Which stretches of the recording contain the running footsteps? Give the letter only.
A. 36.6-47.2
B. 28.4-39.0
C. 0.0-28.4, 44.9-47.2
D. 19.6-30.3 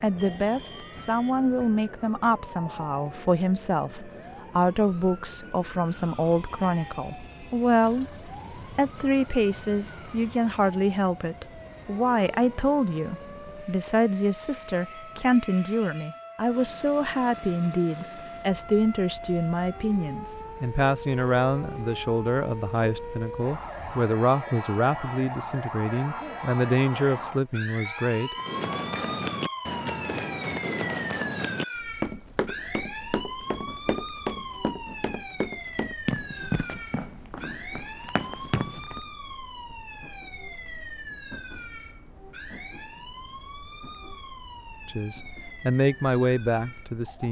B.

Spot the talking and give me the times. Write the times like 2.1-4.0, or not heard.
0.0-28.4, 44.9-47.2.